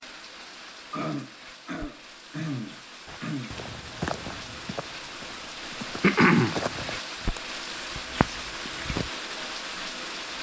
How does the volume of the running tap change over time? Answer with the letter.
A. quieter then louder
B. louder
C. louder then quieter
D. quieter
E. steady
B.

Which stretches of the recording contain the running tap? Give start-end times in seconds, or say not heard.
0.0-10.3.